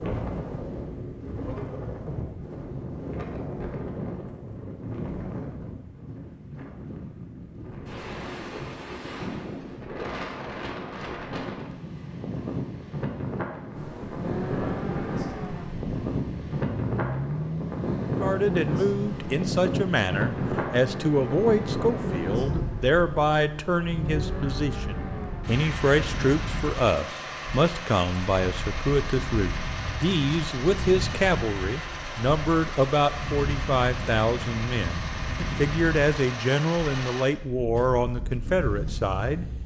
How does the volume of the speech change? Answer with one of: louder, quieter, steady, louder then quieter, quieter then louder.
steady.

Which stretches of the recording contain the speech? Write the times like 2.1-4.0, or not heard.
18.1-39.5.